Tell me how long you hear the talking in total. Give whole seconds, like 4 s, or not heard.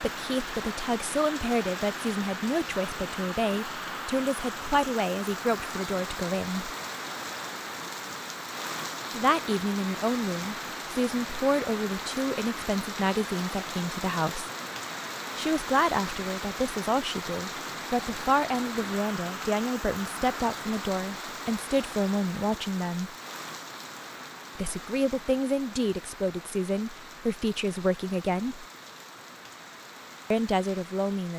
25 s.